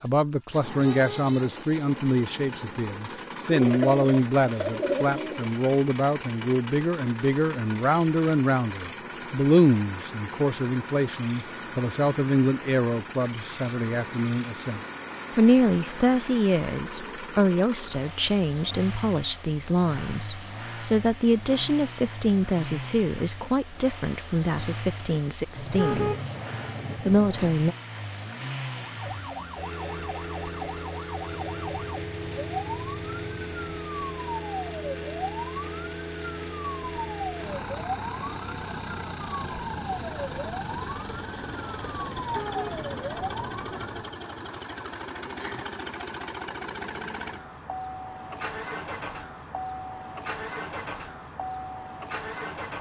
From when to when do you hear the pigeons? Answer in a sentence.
The pigeons can be heard from 3.5 to 5.5 s.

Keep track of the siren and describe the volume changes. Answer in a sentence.
The volume of the siren stays about the same.